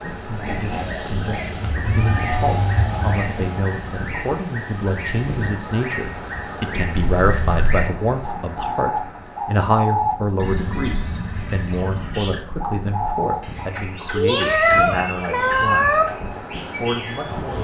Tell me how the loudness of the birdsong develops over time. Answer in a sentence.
The loudness of the birdsong goes up, then down.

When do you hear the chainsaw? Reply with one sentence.
You can hear the chainsaw from 0.2 to 5.5 s.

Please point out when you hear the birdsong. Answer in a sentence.
The birdsong can be heard from 0.0 to 17.5 s.